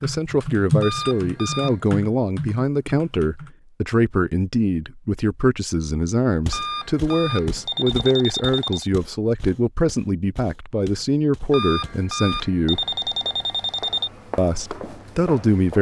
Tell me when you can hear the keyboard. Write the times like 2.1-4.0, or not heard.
0.0-3.5.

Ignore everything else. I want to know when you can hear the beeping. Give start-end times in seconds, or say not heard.
0.8-1.8, 6.5-8.9, 11.5-14.1.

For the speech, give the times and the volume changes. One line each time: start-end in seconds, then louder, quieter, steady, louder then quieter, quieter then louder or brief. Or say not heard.
0.0-12.8 steady
14.3-15.7 brief.